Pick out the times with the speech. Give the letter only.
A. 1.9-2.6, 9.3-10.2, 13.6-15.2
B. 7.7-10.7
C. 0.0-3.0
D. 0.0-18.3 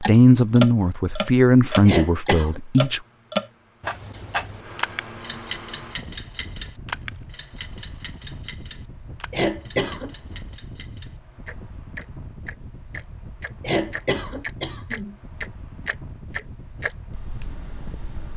C.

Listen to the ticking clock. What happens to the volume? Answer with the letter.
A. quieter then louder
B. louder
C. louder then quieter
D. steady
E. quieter
A.